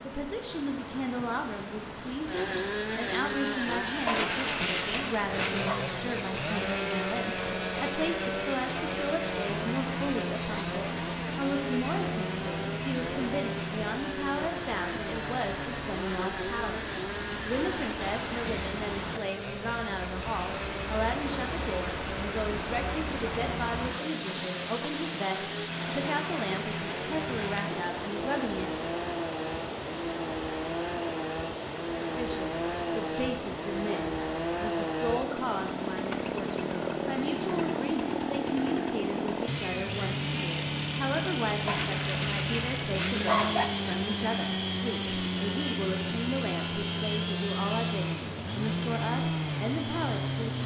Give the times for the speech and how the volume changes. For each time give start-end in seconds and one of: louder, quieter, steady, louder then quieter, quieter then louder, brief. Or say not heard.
0.0-28.8 steady
32.0-50.6 steady.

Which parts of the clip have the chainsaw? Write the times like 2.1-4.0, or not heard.
2.2-50.6.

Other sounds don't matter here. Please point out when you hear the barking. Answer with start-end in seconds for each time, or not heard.
4.0-5.8, 41.6-43.6.